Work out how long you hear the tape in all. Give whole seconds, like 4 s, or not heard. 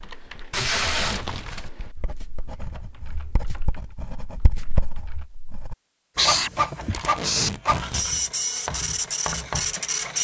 2 s.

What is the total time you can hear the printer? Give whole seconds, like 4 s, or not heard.
4 s.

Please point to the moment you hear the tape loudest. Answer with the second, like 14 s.
1 s.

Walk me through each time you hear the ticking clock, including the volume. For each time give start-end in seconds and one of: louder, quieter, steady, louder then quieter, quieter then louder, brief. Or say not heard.
not heard.